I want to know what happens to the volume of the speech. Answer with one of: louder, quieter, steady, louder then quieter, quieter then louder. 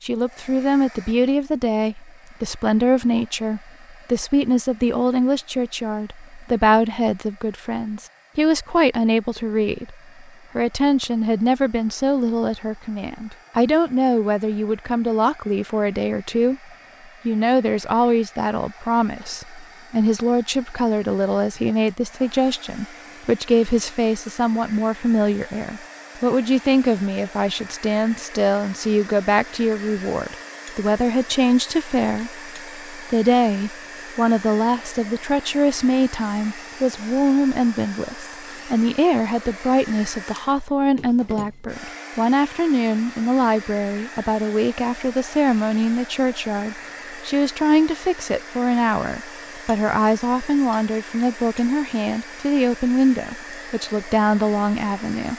steady.